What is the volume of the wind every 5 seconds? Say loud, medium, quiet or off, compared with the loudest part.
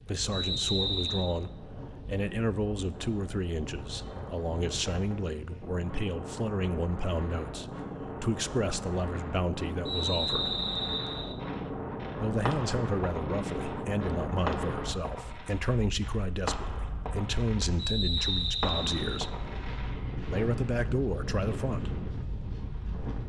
medium, loud, loud, medium, loud.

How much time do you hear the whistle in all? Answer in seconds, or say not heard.
4 s.